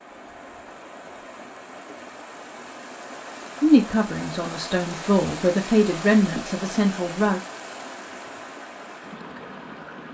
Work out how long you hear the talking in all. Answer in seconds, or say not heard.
4 s.